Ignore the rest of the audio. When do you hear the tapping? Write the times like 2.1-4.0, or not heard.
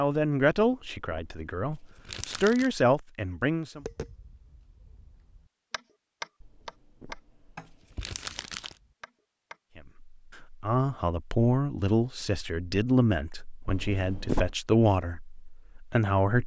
3.8-9.6.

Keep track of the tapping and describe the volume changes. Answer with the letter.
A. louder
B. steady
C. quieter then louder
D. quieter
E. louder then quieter
E.